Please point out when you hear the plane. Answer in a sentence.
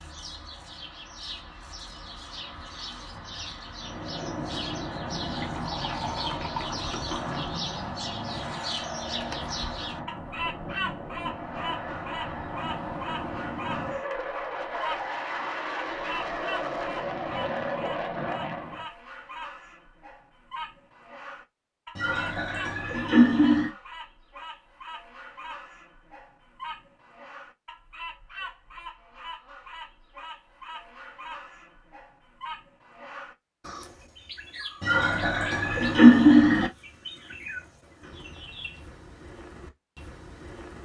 You can hear the plane from 3.7 to 18.9 s.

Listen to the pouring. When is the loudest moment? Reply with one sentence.
The loudest moment of the pouring is at 36 seconds.